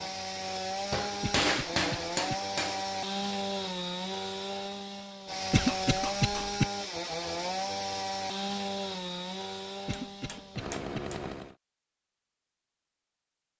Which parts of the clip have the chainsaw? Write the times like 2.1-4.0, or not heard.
0.0-11.6.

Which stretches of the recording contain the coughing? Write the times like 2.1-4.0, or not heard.
1.2-2.4, 5.5-6.7, 9.8-11.0.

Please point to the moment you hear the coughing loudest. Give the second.
6 s.